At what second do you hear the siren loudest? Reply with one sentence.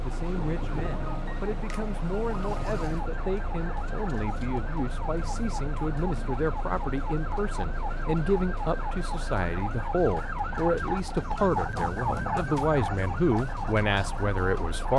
The loudest moment of the siren is at 12 seconds.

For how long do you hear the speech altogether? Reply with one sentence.
The speech can be heard for 15 seconds in total.